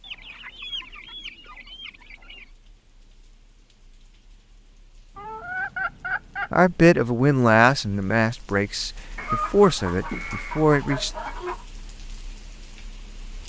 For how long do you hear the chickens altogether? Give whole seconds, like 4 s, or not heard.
7 s.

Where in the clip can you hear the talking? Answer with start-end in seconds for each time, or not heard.
6.5-11.1.